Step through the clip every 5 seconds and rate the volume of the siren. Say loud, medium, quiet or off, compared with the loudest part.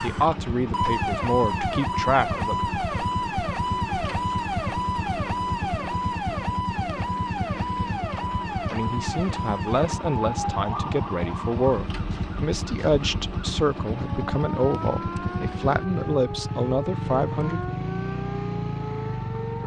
loud, loud, medium, medium.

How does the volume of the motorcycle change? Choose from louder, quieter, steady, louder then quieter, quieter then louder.
steady.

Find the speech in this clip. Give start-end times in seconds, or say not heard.
0.0-2.6, 8.7-17.6.